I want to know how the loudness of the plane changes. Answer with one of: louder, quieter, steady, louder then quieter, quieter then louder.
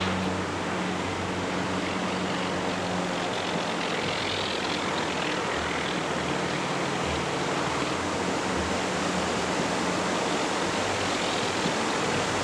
steady.